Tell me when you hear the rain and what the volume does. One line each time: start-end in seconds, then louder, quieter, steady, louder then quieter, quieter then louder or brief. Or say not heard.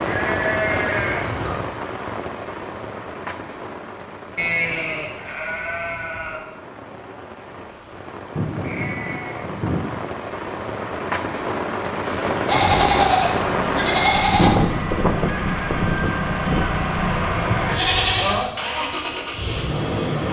0.0-14.4 quieter then louder.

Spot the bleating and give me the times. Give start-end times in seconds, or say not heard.
0.0-1.6, 4.3-6.4, 8.3-9.9, 12.4-14.5, 16.4-18.4.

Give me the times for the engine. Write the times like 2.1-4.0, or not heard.
12.0-20.2.